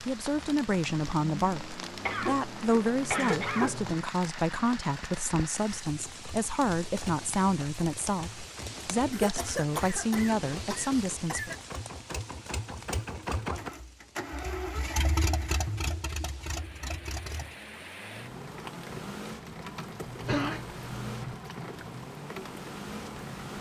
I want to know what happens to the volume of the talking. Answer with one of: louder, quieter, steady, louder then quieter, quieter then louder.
steady.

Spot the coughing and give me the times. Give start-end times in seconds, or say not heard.
2.0-3.8, 9.1-11.6, 20.2-21.4.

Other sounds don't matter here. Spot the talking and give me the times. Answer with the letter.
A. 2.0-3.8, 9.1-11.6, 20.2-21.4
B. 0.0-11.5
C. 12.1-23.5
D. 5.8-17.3
B.